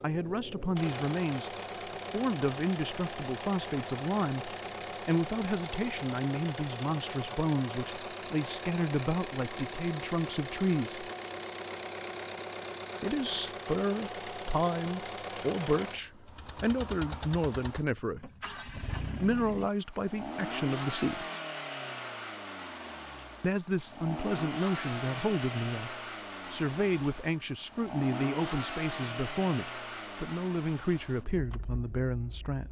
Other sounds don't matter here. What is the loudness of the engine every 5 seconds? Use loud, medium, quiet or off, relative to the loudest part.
loud, loud, loud, loud, loud, loud, medium.